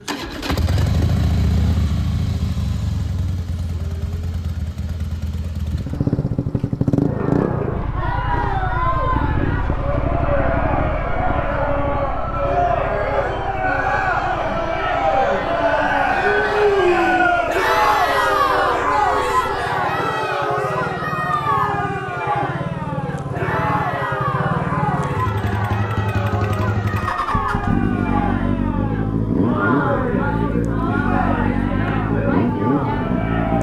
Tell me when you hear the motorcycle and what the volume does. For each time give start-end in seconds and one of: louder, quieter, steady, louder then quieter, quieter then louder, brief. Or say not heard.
0.0-33.5 quieter then louder.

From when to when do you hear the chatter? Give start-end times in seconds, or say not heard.
7.0-33.5.